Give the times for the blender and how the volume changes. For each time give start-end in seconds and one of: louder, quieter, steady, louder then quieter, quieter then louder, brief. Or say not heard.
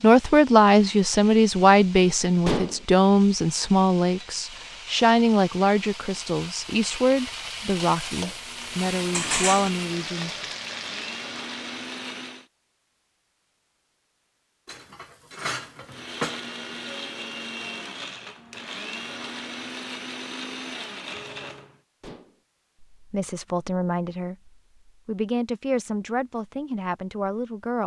8.3-12.5 louder
15.8-21.8 steady.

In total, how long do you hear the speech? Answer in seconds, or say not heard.
15 s.